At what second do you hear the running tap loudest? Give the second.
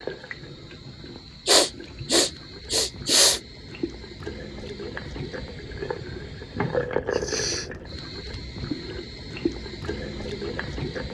7 s.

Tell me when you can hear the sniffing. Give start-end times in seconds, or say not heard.
1.4-3.4, 7.1-7.7.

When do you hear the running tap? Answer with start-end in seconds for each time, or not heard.
0.0-11.1.